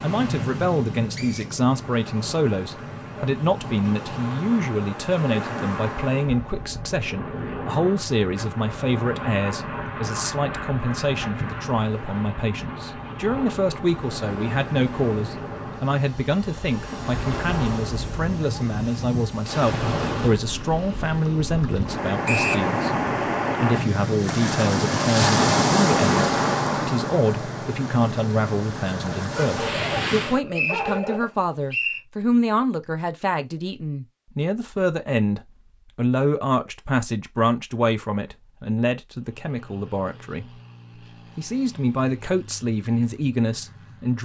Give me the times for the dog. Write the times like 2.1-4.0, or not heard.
29.3-31.2.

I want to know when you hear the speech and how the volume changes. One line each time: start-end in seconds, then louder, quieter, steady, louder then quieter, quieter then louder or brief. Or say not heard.
0.0-23.0 steady
23.6-40.6 steady
41.4-44.1 brief.